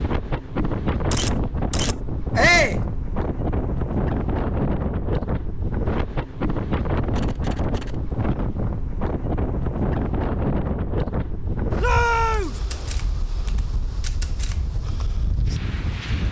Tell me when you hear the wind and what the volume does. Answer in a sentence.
You can hear the wind from 0.0 to 16.2 s, getting quieter.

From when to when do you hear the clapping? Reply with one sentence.
You can't hear the clapping here.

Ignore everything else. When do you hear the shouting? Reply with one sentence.
You can hear the shouting from 2.4 to 2.8 s and from 11.8 to 12.6 s.